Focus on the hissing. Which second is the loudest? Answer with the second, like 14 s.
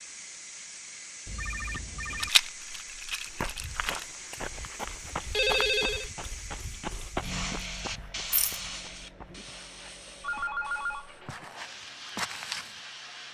8 s.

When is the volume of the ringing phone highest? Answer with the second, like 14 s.
6 s.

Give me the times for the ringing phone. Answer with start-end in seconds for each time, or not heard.
1.2-2.3, 5.3-6.0, 10.2-11.4.